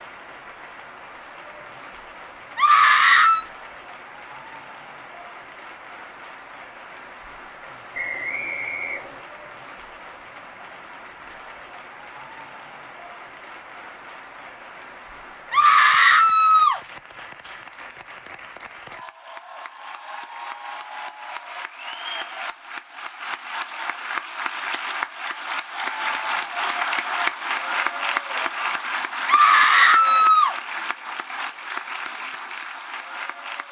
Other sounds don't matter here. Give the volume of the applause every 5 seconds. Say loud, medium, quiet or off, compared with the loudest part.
quiet, quiet, quiet, quiet, medium, loud, medium.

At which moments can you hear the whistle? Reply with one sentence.
You can hear the whistle from 7.9 to 9.2 s.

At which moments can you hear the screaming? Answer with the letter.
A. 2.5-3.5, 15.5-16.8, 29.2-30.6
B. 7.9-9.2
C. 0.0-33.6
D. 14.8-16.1
A.